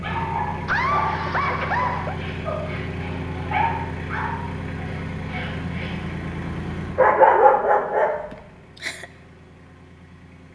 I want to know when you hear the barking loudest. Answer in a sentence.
The volume of the barking peaks at 7 seconds.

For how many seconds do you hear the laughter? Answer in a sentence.
You can hear the laughter for 2 seconds altogether.